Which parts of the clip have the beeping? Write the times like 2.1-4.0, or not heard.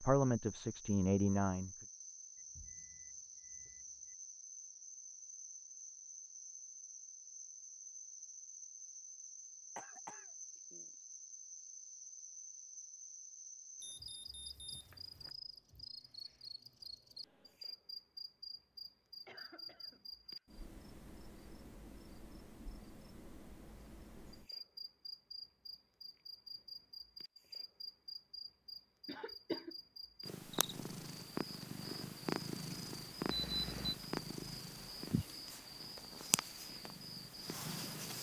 2.4-4.2, 13.8-15.3, 33.2-34.0.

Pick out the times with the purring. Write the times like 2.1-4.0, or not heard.
30.2-38.1.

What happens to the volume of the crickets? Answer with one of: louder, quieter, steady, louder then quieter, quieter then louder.
steady.